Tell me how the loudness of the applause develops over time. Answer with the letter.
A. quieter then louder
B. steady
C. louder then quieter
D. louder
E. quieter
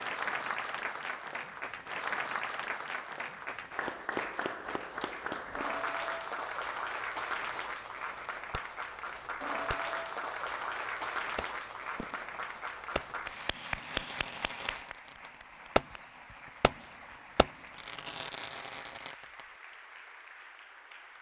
E.